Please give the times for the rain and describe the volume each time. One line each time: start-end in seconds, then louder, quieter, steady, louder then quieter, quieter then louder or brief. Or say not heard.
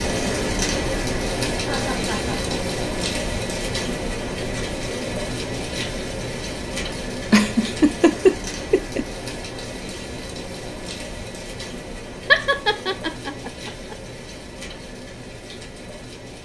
0.0-16.4 quieter.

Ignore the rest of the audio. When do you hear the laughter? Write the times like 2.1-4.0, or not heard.
1.6-2.5, 6.9-9.1, 12.2-13.9.